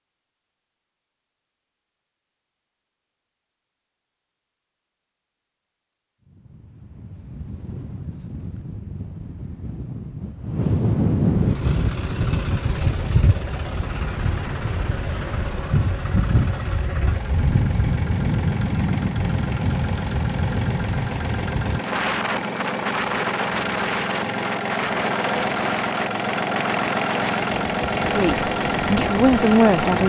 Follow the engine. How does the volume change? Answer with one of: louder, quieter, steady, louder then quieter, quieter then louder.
louder.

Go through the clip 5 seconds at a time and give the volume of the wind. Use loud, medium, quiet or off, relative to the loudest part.
off, quiet, loud, loud, loud, medium.